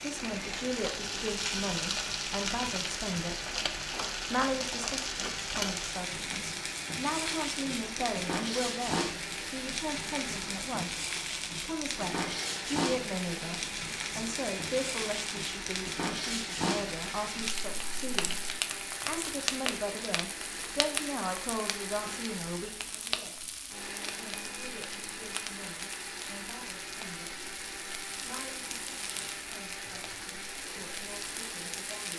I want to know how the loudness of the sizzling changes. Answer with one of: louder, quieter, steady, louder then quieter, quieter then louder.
quieter.